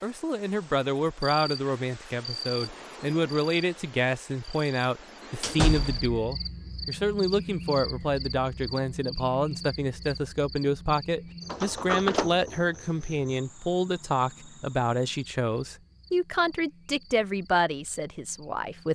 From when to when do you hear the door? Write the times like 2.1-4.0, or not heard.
5.4-6.2, 11.4-12.6.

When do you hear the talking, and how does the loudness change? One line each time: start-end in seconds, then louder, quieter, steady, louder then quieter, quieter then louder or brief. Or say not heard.
0.0-18.9 steady.